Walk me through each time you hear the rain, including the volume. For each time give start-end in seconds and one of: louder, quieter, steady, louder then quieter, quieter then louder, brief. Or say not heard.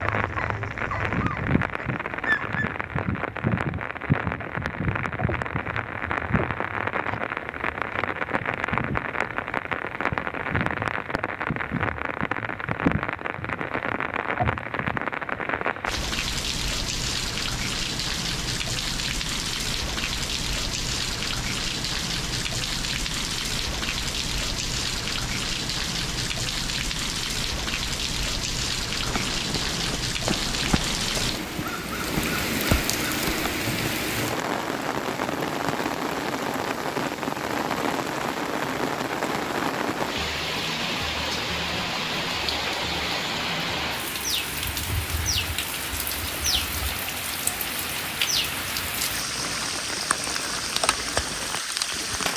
0.0-52.3 steady.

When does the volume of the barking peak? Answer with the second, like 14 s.
2 s.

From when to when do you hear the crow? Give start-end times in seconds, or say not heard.
28.9-34.1.